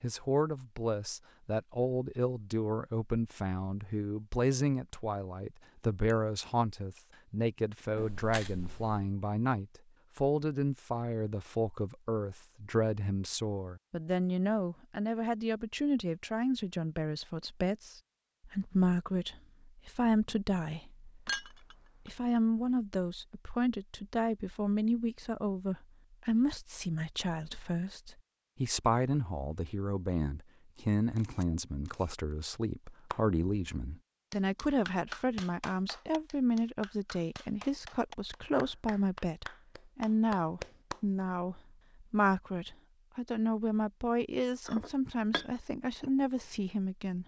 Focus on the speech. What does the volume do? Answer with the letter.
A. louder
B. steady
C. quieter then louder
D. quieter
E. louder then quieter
B.